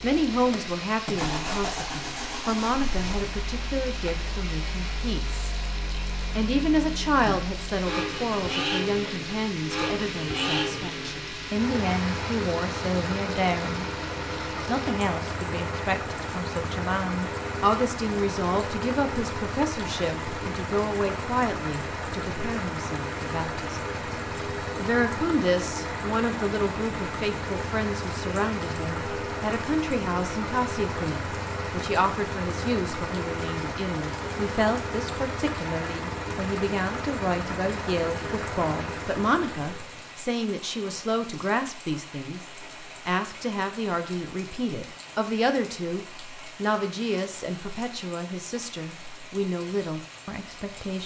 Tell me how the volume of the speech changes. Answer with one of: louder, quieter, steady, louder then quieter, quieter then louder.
steady.